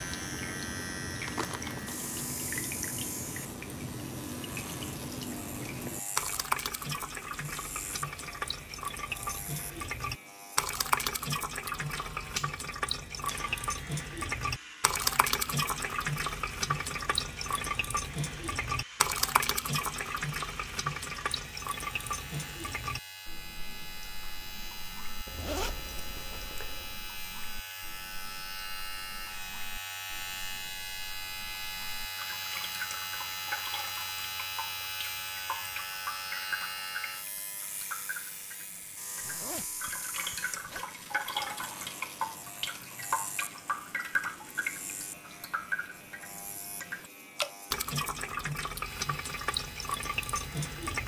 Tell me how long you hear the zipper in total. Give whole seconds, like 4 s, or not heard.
4 s.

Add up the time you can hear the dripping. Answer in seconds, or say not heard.
51 s.